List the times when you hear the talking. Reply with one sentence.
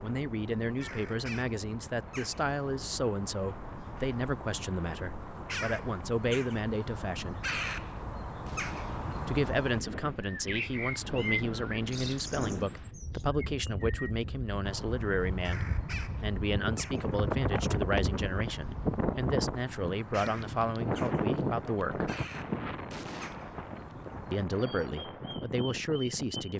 You can hear the talking from 0.0 to 7.5 s, from 9.2 to 22.1 s and from 24.3 to 26.5 s.